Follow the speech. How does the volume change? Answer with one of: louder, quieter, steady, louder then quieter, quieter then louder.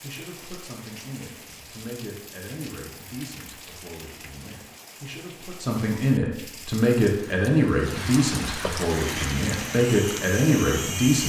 louder.